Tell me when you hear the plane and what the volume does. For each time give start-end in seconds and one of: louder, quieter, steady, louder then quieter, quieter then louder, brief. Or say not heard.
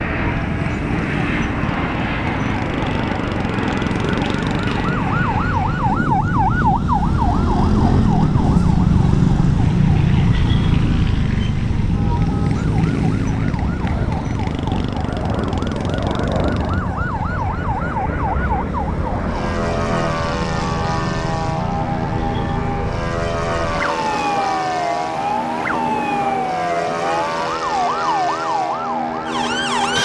0.0-30.0 steady.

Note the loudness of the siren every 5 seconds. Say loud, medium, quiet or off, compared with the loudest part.
medium, loud, loud, medium, medium, medium.